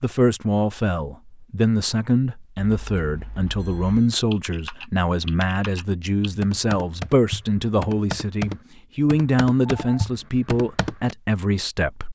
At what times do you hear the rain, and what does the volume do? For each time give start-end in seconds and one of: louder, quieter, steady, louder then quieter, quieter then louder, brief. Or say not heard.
not heard.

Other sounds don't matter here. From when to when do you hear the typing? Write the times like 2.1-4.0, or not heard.
2.8-11.1.